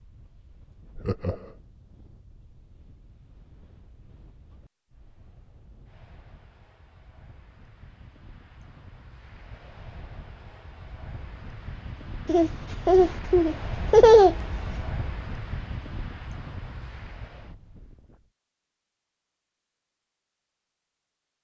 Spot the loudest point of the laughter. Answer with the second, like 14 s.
14 s.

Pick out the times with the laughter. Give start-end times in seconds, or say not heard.
0.9-1.6, 12.2-14.8.